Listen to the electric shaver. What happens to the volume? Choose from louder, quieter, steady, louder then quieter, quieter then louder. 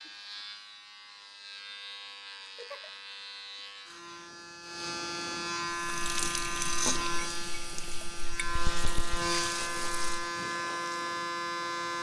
louder.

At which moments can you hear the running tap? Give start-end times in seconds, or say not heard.
5.7-10.2.